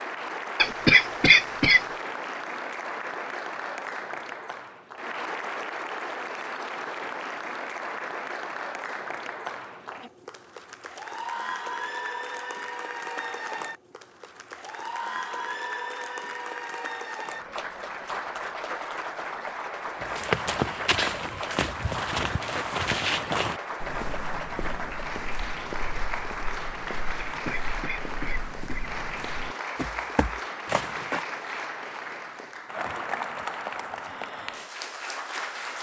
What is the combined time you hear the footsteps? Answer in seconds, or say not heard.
11 s.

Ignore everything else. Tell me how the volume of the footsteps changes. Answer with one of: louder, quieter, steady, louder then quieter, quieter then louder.
quieter then louder.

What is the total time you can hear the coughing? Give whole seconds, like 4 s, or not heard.
3 s.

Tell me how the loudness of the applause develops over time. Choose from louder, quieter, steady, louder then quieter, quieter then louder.
steady.